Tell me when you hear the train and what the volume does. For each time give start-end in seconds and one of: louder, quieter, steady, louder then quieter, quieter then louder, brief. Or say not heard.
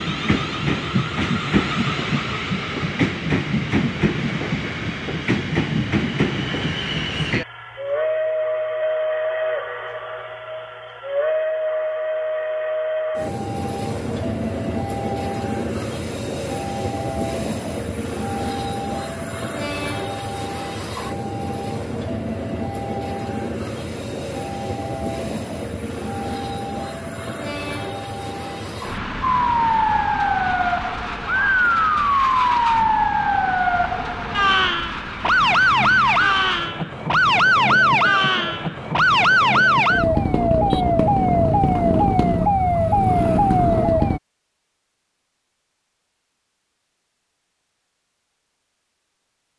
0.0-40.0 quieter.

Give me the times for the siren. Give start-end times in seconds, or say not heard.
29.2-44.2.